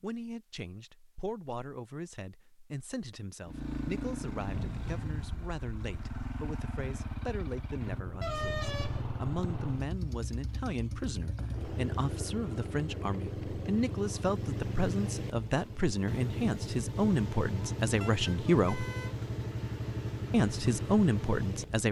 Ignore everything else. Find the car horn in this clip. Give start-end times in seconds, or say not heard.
8.2-9.2, 18.0-19.1.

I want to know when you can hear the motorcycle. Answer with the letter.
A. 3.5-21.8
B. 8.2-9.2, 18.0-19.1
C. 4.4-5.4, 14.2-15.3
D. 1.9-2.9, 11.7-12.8
A.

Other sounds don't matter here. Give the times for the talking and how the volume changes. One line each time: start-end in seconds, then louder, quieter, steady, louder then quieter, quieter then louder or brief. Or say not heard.
0.0-18.9 louder
20.3-21.8 brief.